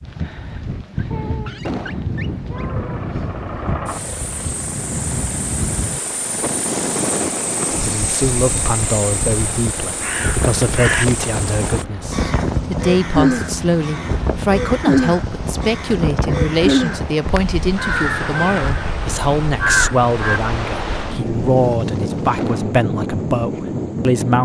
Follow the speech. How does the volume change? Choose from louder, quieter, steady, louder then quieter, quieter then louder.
steady.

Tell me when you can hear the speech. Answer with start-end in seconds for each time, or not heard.
7.8-24.4.